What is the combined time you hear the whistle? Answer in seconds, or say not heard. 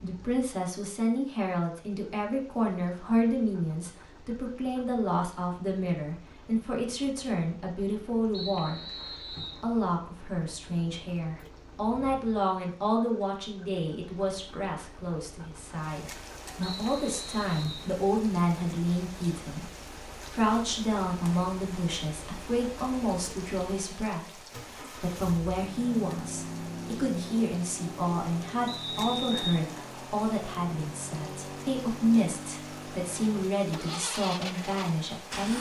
3 s.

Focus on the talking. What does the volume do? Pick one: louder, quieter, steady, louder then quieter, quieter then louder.
steady.